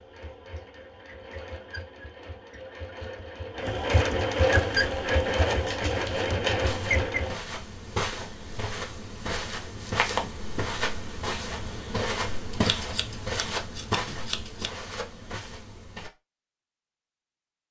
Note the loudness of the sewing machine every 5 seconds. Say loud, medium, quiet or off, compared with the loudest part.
loud, loud, off, off.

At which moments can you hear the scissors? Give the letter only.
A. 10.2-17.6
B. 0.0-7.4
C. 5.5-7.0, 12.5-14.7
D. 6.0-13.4
C.